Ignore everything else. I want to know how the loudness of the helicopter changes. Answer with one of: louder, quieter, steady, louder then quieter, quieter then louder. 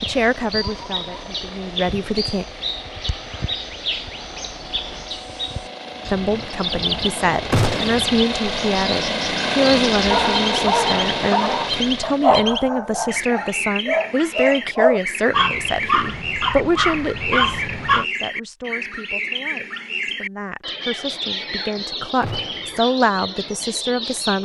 louder.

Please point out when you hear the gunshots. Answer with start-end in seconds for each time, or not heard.
7.5-8.1, 22.2-22.8.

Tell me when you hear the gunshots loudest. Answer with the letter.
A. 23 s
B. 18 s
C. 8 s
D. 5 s
C.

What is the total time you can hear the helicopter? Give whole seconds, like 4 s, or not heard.
12 s.